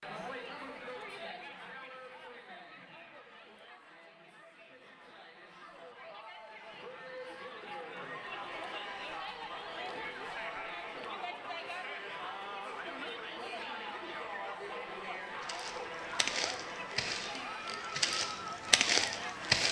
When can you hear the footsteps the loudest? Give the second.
19 s.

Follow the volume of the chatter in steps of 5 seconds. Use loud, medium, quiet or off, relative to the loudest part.
medium, loud, loud, loud.